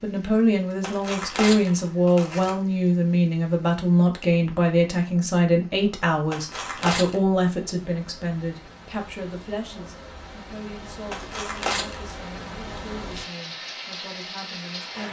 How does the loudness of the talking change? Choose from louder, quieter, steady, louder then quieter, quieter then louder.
quieter.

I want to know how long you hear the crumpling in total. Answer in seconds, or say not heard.
4 s.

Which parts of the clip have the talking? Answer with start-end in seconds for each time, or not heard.
0.0-15.0.